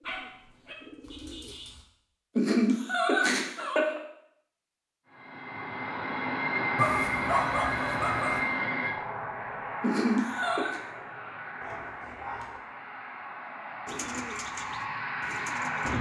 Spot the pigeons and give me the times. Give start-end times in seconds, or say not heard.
0.0-1.8, 13.8-15.9.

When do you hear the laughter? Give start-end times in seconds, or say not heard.
2.4-4.0, 9.8-10.8.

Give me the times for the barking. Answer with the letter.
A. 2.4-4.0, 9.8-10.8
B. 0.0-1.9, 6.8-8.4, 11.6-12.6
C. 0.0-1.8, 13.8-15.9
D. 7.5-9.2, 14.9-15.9
B.